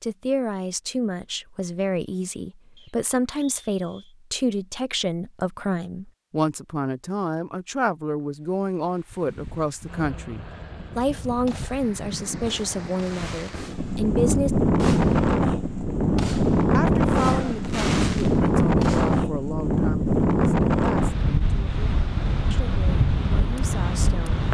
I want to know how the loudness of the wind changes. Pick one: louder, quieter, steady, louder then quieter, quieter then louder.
louder then quieter.